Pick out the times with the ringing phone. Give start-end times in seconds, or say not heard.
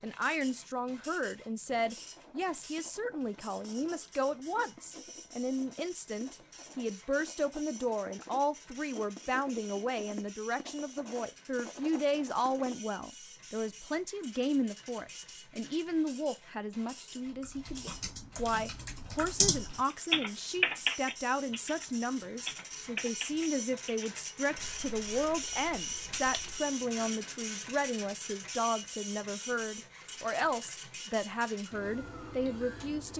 not heard.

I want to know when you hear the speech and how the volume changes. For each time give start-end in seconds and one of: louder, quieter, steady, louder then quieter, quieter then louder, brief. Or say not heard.
0.0-33.1 steady.